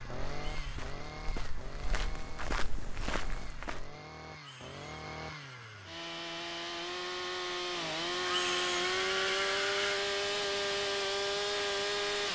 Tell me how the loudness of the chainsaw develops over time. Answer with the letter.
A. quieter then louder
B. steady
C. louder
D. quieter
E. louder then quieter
C.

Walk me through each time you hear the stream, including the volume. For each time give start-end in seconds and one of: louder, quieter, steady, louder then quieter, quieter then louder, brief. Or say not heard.
not heard.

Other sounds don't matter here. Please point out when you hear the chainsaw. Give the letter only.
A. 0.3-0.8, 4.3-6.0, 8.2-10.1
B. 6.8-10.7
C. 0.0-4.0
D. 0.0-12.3
D.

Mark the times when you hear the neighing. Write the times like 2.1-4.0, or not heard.
0.3-0.8, 4.3-6.0, 8.2-10.1.